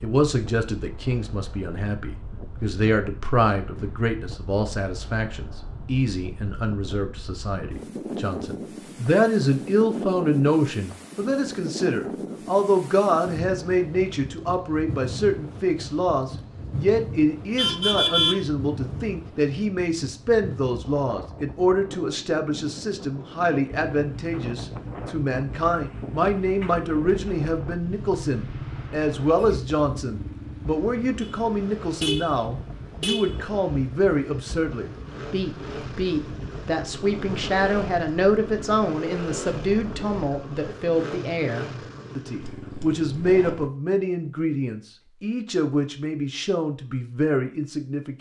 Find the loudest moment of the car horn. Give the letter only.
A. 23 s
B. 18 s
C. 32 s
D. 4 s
B.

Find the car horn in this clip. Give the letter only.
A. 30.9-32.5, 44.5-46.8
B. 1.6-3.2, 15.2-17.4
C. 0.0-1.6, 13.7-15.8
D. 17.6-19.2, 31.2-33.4
D.